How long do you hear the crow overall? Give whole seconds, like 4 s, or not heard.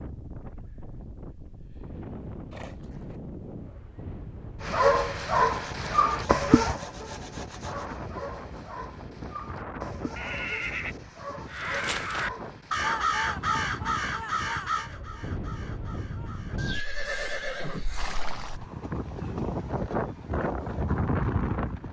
7 s.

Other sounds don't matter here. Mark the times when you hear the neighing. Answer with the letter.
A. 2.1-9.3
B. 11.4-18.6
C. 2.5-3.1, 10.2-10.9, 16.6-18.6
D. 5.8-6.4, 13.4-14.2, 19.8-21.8
C.